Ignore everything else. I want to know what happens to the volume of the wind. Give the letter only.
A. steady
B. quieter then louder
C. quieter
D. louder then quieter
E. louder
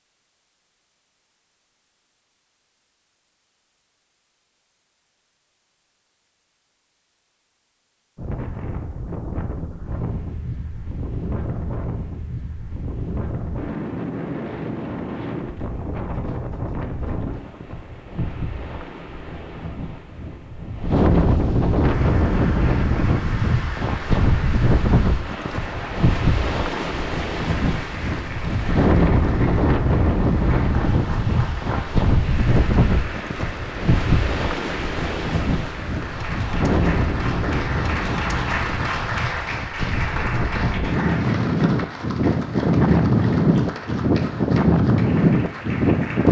E.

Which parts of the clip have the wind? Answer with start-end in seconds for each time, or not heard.
8.2-46.2.